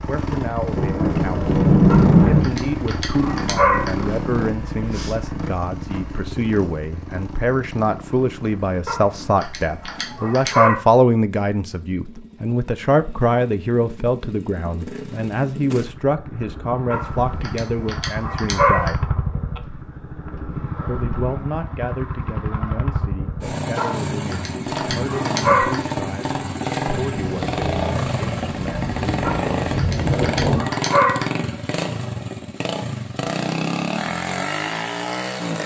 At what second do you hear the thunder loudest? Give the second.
2 s.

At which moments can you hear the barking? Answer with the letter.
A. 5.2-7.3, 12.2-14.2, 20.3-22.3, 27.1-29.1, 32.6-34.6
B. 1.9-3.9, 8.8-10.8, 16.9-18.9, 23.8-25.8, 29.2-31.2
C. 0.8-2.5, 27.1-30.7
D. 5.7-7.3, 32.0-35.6
B.